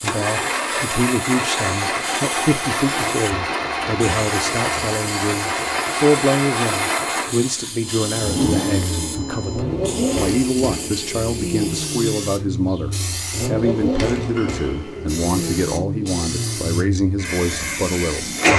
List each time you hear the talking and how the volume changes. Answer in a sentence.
You can hear the talking from 0.0 to 18.5 s, at a steady volume.